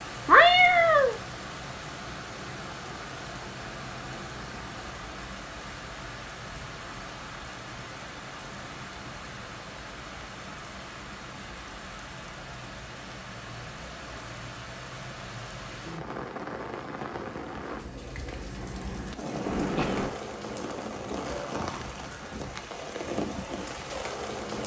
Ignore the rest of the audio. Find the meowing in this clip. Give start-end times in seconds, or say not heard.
0.2-1.1, 19.4-20.1.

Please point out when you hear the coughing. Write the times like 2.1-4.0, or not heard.
not heard.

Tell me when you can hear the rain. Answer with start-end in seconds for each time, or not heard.
0.0-24.6.